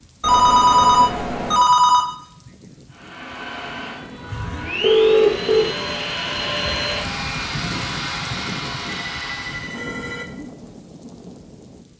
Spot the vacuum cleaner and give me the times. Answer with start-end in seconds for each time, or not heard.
2.9-9.8.